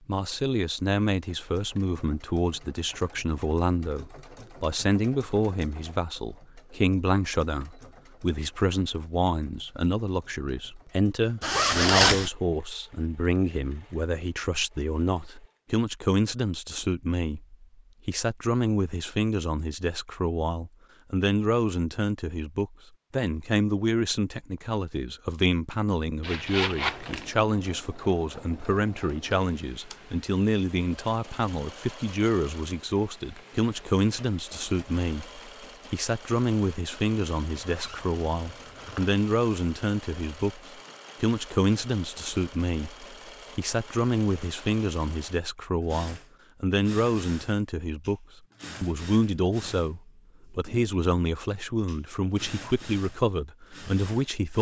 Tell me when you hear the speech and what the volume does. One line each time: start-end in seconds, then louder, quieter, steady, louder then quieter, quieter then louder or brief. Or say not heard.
0.1-40.6 steady
41.2-54.5 steady.